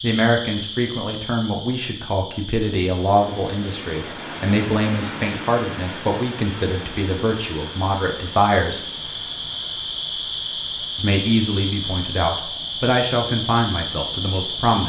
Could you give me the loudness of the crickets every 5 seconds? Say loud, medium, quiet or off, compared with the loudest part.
medium, medium, loud.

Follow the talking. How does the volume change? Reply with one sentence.
The volume of the talking stays about the same.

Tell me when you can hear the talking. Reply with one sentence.
You can hear the talking from 0.0 to 8.8 s and from 10.9 to 14.8 s.